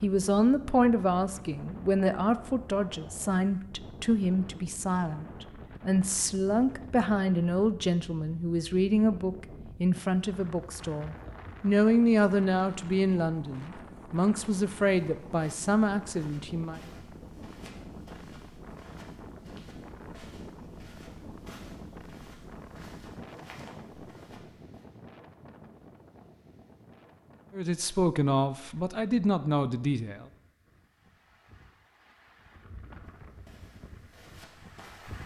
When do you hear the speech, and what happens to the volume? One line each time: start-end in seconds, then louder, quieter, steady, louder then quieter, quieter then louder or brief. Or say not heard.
0.0-16.8 steady
27.5-30.2 brief.